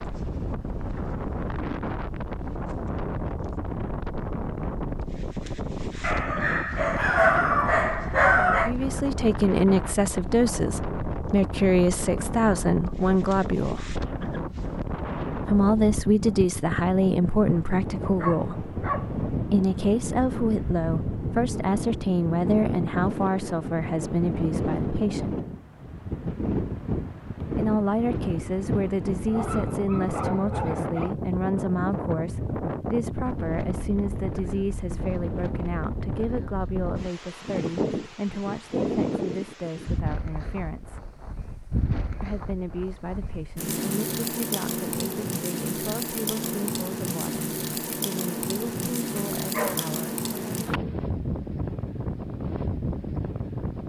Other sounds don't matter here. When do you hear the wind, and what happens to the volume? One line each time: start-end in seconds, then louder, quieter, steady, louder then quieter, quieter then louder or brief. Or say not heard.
0.0-53.8 steady.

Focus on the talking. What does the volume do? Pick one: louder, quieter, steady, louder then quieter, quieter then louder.
quieter.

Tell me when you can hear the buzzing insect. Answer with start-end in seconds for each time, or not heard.
not heard.